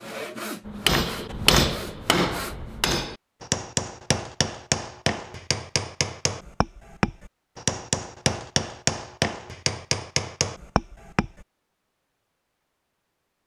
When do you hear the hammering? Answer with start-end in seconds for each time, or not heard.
0.7-11.4.